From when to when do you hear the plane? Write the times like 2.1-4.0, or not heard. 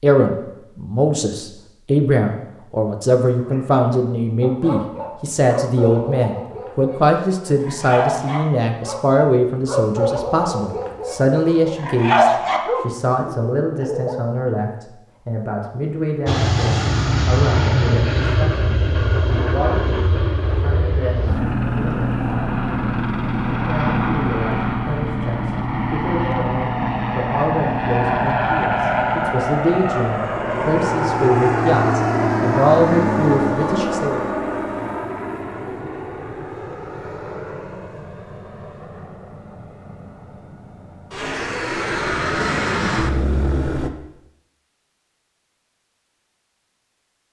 16.2-43.9.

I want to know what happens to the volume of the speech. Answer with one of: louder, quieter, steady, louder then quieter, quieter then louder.
quieter then louder.